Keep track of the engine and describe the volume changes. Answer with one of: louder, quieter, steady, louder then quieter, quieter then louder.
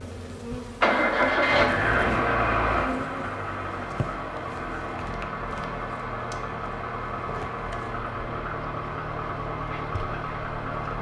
quieter.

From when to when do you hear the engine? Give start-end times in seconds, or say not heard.
0.0-10.9.